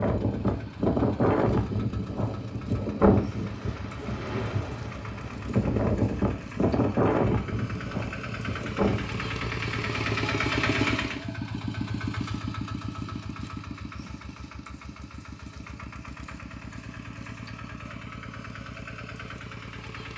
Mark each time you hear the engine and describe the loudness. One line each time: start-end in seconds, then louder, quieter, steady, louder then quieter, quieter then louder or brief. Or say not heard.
0.0-20.1 louder then quieter.